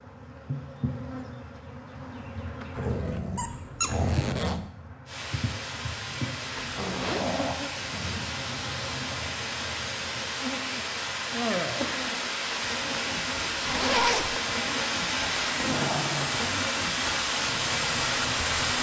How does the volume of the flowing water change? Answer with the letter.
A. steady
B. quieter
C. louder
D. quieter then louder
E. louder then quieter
C.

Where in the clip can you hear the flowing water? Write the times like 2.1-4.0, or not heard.
5.0-18.7.